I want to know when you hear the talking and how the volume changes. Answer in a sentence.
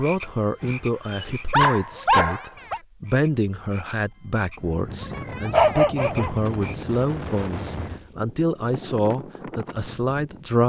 The talking can be heard from 0.0 to 10.6 s, at a steady volume.